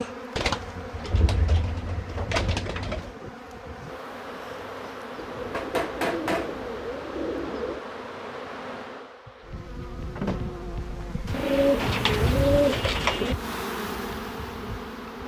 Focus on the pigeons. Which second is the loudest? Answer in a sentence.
The volume of the pigeons peaks at 13 seconds.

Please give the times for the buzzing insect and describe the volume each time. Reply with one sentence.
The buzzing insect can be heard from 0.0 to 15.2 s, getting louder.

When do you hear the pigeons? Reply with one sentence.
You can hear the pigeons from 0.3 to 3.1 s, from 5.2 to 7.8 s and from 11.3 to 13.3 s.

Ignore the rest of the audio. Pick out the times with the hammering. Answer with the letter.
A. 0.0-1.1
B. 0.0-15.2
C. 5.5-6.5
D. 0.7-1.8
C.